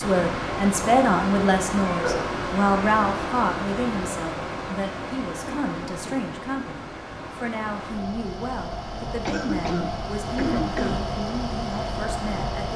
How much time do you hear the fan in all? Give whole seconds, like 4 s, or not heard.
13 s.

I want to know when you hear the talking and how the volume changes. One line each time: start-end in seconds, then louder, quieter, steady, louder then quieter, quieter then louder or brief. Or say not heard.
0.0-12.7 quieter.